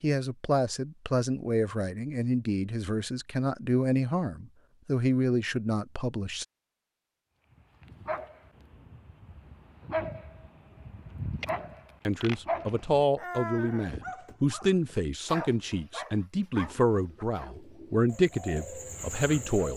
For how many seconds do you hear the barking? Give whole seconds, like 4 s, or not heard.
10 s.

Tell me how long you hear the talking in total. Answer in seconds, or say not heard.
14 s.